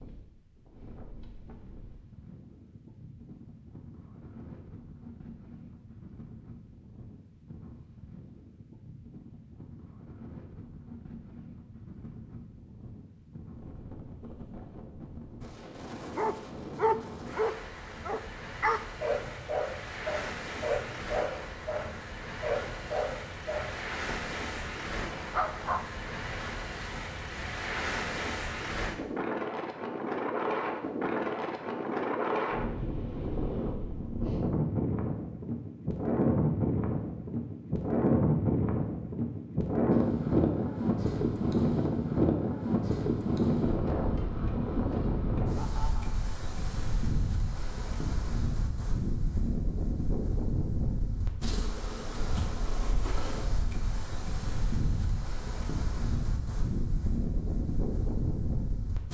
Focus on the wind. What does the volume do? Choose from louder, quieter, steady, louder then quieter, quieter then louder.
louder then quieter.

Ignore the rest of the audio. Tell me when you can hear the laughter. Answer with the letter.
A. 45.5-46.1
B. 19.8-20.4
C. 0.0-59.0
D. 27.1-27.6
A.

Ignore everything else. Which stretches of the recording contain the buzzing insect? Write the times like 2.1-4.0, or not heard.
not heard.